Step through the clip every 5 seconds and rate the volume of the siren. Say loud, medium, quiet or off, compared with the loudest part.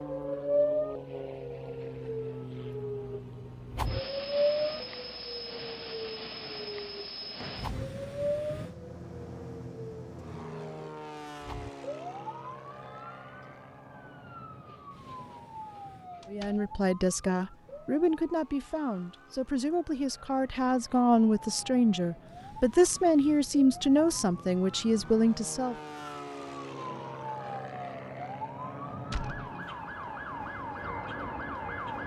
loud, medium, quiet, quiet, quiet, medium, medium.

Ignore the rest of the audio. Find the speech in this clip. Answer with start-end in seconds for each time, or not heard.
16.3-25.8.